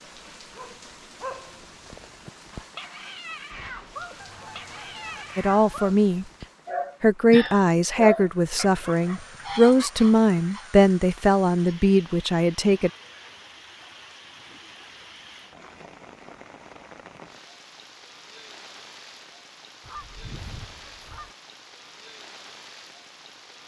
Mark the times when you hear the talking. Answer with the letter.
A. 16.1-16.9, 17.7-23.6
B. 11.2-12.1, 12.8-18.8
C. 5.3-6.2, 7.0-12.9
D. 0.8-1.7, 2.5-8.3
C.